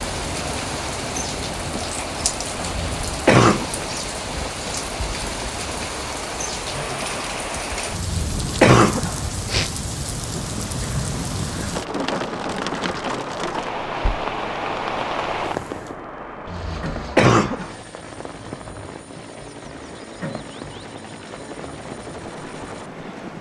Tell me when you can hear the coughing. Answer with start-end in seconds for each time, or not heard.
2.8-3.7, 7.9-9.8, 16.4-17.7.